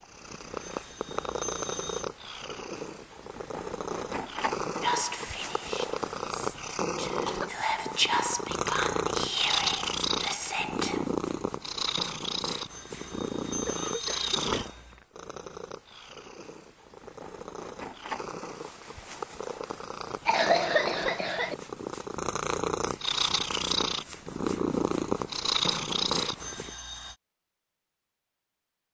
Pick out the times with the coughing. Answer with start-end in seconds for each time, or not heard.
7.0-7.5, 13.7-14.5, 20.2-21.6.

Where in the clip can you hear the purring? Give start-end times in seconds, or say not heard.
0.0-26.7.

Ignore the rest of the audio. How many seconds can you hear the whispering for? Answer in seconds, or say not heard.
6 s.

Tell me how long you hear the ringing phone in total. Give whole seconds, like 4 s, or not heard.
5 s.